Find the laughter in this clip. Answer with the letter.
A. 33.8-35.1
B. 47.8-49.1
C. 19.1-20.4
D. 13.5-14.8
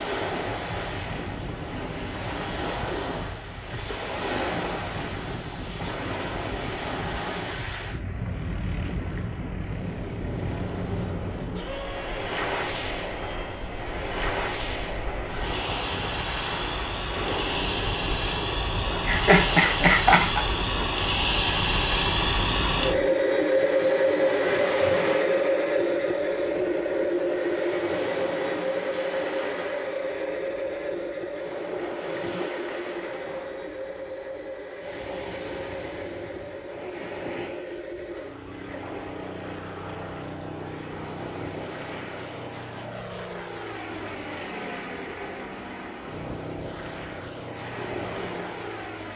C.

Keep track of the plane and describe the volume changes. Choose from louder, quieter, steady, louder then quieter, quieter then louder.
louder then quieter.